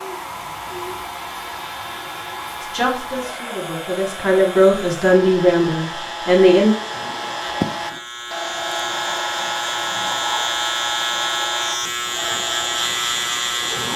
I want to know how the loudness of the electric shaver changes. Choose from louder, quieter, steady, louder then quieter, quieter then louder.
louder.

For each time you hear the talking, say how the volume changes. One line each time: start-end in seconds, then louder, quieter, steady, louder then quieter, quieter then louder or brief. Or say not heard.
2.6-6.7 louder then quieter.